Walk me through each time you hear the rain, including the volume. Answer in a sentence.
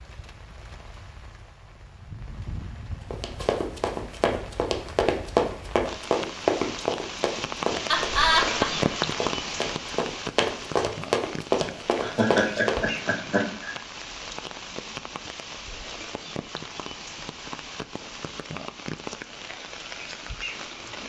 You can hear the rain from 0.0 to 21.0 s, getting louder then quieter.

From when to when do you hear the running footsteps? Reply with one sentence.
The running footsteps can be heard from 3.1 to 13.1 s.